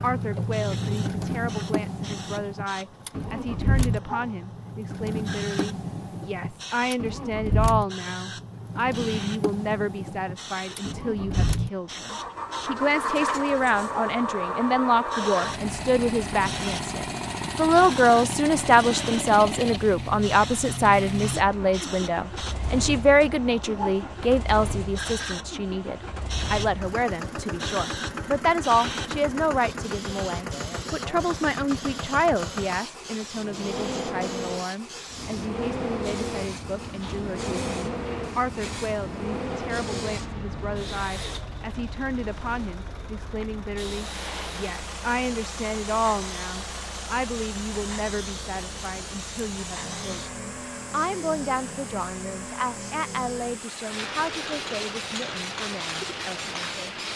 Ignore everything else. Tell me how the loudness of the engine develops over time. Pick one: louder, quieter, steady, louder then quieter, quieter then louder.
quieter.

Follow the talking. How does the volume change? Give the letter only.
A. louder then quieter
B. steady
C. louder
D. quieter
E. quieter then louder
A.